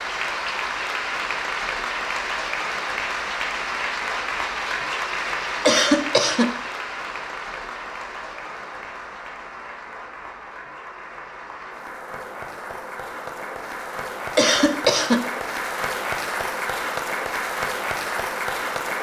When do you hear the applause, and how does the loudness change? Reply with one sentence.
You can hear the applause from 0.0 to 18.9 s, getting quieter then louder.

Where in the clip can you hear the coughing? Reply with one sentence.
You can hear the coughing from 5.7 to 6.5 s and from 14.3 to 15.2 s.